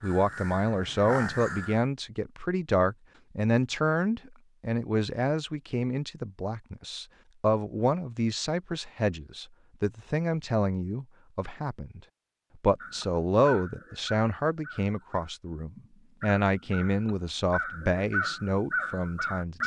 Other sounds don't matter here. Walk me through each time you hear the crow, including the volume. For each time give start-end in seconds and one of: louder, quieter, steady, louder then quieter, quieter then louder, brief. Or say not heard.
0.0-1.9 brief
12.8-19.6 quieter then louder.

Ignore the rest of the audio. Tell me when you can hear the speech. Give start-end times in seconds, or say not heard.
0.0-12.0, 12.6-19.6.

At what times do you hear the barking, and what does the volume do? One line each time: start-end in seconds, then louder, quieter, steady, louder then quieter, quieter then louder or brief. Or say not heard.
not heard.